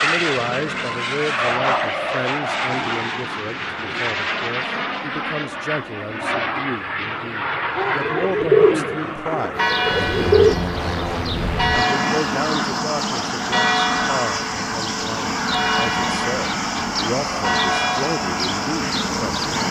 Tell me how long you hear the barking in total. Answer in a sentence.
You can't hear the barking here.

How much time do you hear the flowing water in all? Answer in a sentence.
You can't hear the flowing water here.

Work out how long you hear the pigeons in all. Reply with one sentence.
You can hear the pigeons for 3 seconds altogether.